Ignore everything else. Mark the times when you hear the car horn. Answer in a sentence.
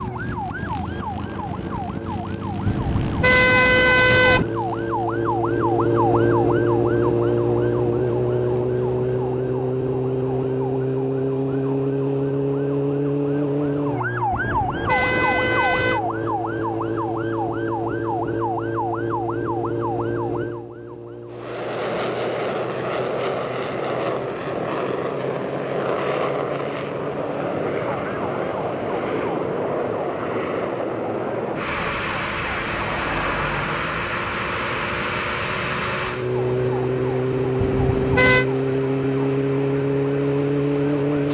The car horn can be heard from 2.6 to 4.5 s, from 14.3 to 16.0 s and from 37.5 to 38.5 s.